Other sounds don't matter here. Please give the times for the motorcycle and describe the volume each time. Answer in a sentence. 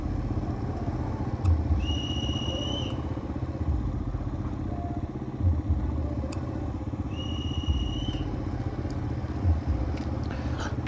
The motorcycle can be heard from 0.0 to 10.8 s, at a steady volume.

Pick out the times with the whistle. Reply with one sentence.
You can hear the whistle from 1.8 to 3.0 s and from 7.1 to 8.3 s.